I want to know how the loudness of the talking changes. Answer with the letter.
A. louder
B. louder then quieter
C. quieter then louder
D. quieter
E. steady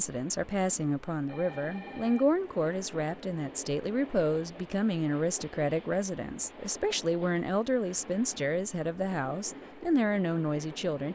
E.